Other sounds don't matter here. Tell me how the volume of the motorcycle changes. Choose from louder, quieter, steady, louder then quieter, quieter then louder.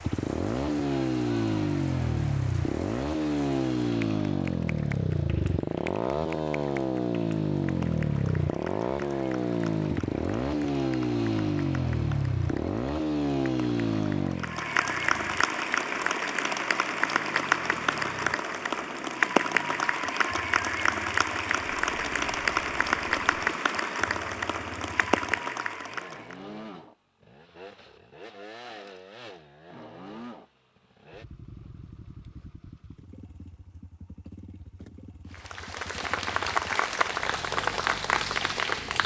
quieter.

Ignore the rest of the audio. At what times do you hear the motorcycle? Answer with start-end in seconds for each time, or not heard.
0.0-39.0.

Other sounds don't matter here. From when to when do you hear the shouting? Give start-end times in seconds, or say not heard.
not heard.